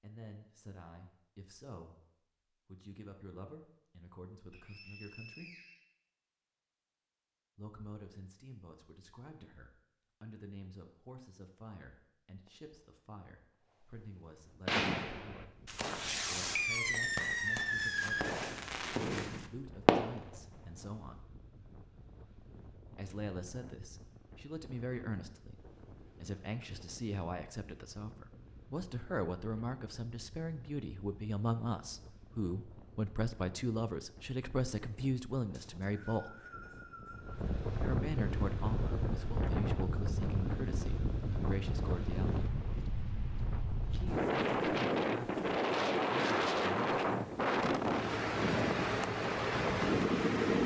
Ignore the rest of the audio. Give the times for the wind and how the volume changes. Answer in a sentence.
The wind can be heard from 14.3 to 50.6 s, getting louder.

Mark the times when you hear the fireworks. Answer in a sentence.
The fireworks can be heard from 12.4 to 13.2 s and from 14.7 to 20.4 s.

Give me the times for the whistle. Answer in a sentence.
The whistle can be heard from 4.5 to 5.8 s and from 35.5 to 37.5 s.